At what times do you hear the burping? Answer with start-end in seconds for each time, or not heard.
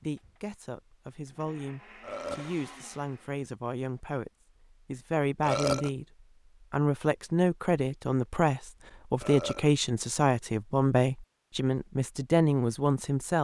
2.0-2.5, 5.4-5.9, 9.2-9.7.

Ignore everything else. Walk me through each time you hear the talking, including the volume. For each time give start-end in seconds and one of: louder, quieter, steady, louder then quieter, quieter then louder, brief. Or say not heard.
0.0-6.0 louder
6.7-13.3 steady.